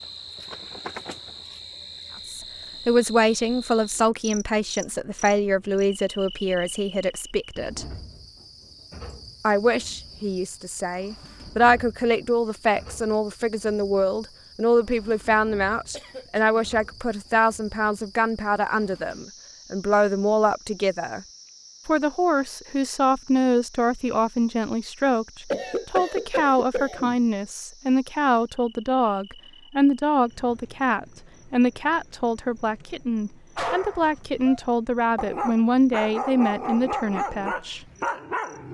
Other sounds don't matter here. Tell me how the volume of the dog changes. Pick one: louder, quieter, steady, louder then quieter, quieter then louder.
louder.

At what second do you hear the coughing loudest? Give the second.
26 s.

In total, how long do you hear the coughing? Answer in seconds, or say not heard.
2 s.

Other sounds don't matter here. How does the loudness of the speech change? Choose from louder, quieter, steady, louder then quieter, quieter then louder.
steady.